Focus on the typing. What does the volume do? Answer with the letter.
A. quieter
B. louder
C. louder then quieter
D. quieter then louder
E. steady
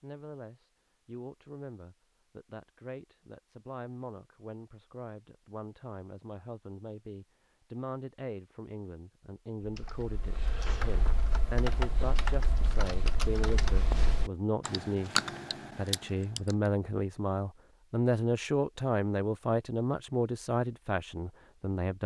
B.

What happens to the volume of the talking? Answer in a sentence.
The loudness of the talking goes up.